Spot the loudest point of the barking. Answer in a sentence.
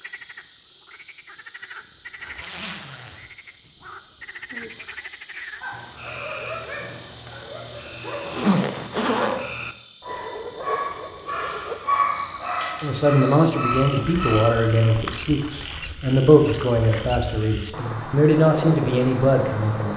The loudest moment of the barking is at 12 seconds.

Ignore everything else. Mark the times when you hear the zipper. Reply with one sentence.
You can hear the zipper from 2.2 to 3.7 s, from 8.2 to 9.4 s and from 14.9 to 15.9 s.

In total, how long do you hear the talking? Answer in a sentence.
The talking can be heard for 7 seconds in total.